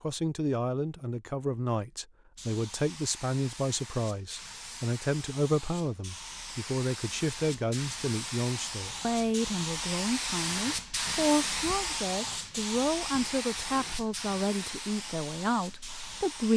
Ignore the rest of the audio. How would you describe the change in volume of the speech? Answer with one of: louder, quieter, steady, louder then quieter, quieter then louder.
steady.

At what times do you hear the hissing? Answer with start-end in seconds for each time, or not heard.
2.4-16.5.